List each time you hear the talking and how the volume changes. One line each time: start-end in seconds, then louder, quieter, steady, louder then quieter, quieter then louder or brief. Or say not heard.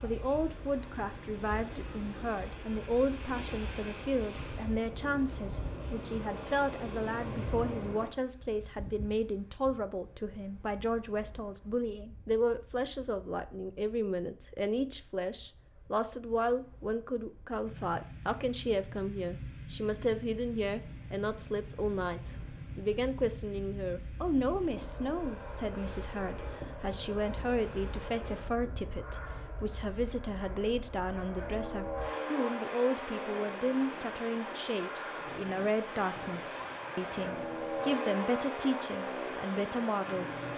0.0-40.5 steady.